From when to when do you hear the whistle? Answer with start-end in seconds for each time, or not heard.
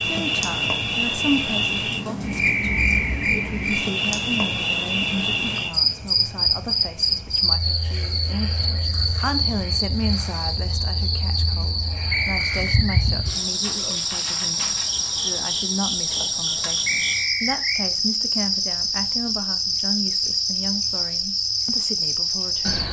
2.4-3.2, 12.1-13.1, 16.9-17.9.